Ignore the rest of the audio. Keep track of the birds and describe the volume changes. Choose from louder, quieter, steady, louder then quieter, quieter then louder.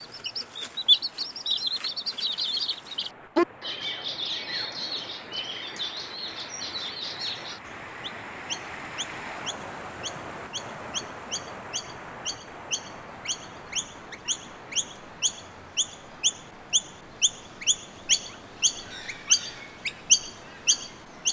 quieter then louder.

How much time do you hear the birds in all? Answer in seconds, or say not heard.
21 s.